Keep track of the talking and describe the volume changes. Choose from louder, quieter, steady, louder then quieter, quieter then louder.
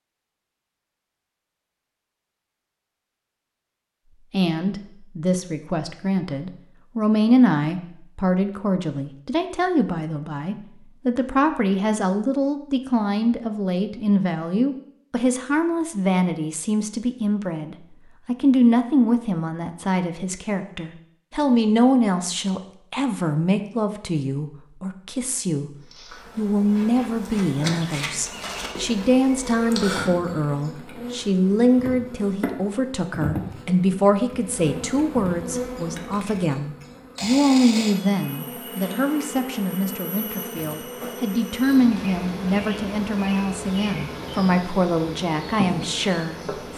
steady.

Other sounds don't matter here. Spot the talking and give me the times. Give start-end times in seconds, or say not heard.
4.3-25.8, 26.4-46.7.